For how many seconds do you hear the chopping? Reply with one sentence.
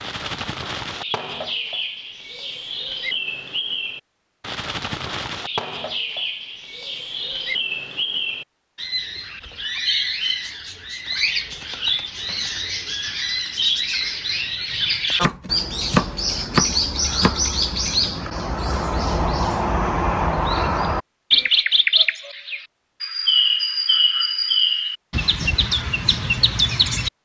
You can hear the chopping for 2 seconds altogether.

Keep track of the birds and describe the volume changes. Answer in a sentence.
The loudness of the birds goes up.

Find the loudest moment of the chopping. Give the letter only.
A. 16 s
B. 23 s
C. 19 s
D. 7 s
A.